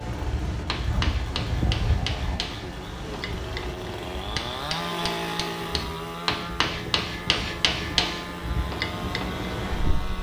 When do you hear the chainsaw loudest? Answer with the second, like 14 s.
5 s.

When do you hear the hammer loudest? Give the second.
8 s.